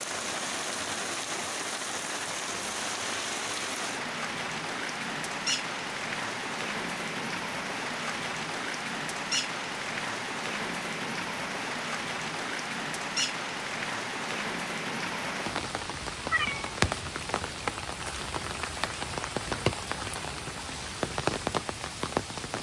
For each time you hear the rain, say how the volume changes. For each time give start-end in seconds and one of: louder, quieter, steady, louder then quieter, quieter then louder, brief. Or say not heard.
0.0-22.5 steady.